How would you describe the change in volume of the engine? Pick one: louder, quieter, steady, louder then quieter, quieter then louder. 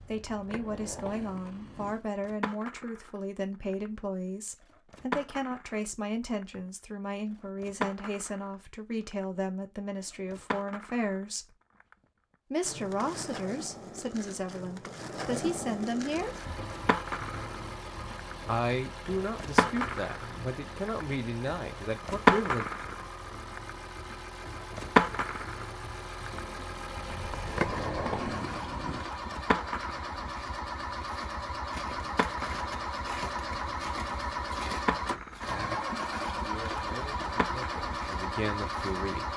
louder.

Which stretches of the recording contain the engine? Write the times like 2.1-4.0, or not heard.
16.1-39.3.